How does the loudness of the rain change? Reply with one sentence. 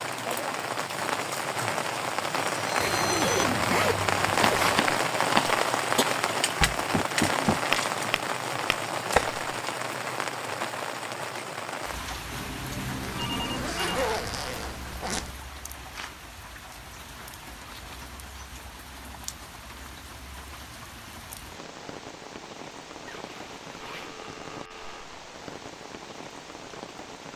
The volume of the rain goes down.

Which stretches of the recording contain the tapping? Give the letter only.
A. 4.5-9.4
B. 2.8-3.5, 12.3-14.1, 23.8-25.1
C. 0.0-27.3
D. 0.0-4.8
A.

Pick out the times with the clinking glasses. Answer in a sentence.
You can't hear the clinking glasses here.